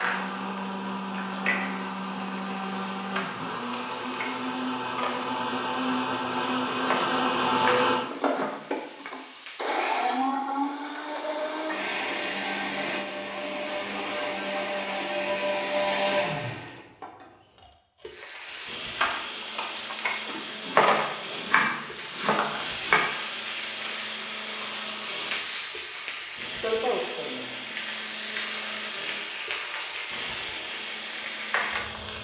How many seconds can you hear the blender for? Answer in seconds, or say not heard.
32 s.